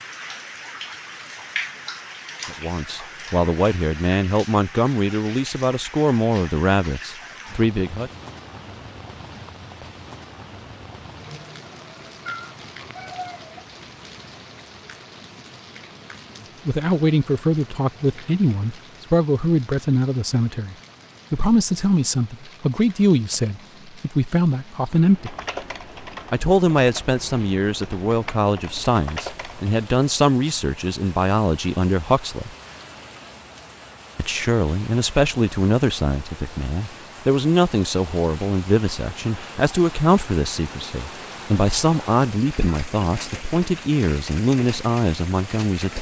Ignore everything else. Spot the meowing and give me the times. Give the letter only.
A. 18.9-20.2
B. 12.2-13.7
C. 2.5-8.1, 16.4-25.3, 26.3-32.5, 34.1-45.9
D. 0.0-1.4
B.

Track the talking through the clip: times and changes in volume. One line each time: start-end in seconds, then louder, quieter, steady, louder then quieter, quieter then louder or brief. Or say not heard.
2.5-8.1 steady
16.4-25.3 steady
26.3-32.5 steady
34.1-45.9 steady.